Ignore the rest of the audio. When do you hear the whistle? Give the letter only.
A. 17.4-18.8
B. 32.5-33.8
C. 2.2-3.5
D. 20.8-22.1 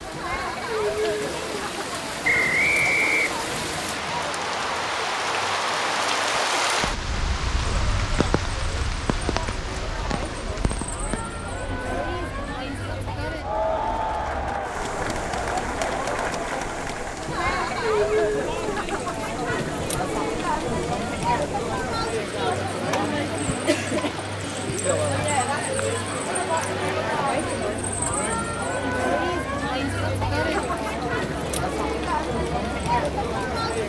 C.